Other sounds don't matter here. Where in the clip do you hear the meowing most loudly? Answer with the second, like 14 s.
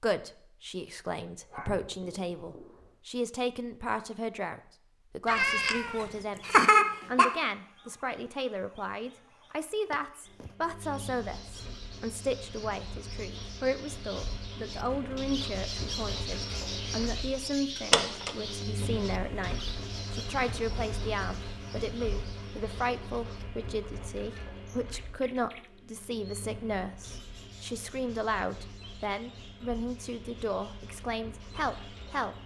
7 s.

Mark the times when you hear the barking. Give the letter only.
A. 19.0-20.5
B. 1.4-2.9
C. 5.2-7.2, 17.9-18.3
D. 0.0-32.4
B.